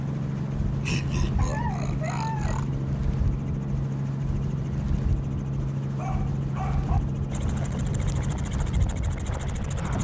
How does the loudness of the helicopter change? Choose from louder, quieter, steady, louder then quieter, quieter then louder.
steady.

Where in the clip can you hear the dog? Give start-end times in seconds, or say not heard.
1.4-2.6, 6.0-7.0.